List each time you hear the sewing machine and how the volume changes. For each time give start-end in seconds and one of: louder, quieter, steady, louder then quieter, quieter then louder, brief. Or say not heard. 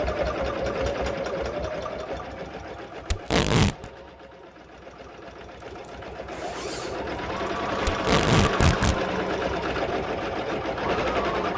0.0-11.5 quieter then louder.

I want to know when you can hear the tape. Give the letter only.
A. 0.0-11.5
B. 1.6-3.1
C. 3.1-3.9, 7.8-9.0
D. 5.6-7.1
C.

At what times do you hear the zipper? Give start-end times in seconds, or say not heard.
5.6-7.1.